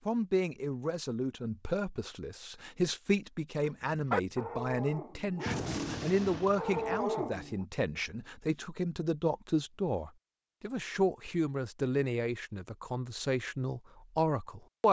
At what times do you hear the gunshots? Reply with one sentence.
The gunshots can be heard from 5.5 to 7.0 s.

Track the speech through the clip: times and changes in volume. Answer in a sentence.
You can hear the speech from 0.1 to 14.8 s, at a steady volume.